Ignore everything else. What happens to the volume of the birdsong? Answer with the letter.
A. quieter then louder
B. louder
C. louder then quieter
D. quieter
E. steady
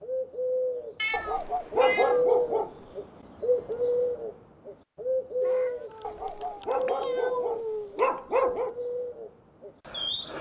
D.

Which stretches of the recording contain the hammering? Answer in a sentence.
You can't hear the hammering here.